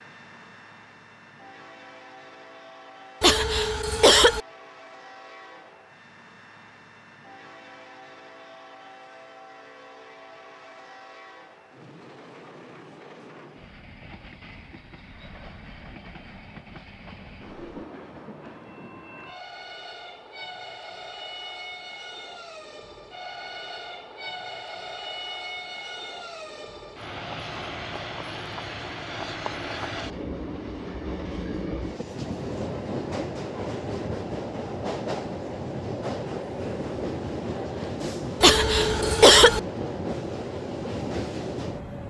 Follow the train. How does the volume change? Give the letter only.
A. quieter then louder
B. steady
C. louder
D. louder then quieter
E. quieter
C.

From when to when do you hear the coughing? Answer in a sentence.
The coughing can be heard from 3.2 to 4.4 s and from 38.4 to 39.6 s.